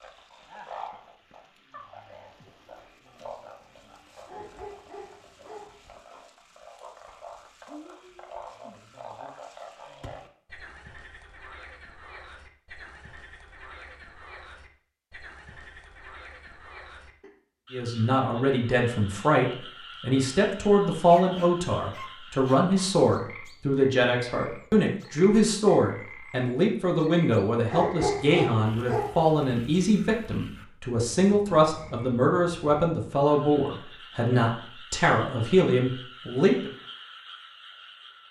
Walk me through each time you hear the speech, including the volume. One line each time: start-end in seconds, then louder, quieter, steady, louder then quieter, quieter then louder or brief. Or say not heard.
17.7-36.7 steady.